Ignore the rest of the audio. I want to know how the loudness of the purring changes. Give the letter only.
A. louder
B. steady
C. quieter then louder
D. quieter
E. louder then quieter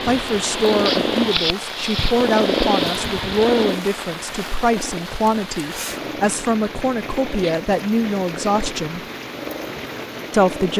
D.